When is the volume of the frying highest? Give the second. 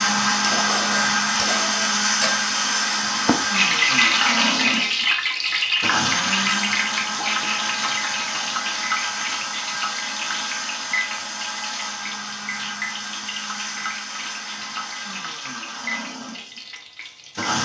4 s.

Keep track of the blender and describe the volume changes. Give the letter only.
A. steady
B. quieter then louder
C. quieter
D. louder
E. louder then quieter
C.